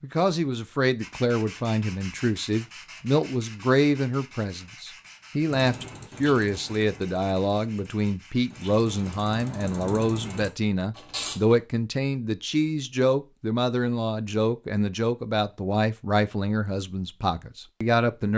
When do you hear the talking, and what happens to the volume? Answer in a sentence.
The talking can be heard from 0.0 to 18.3 s, at a steady volume.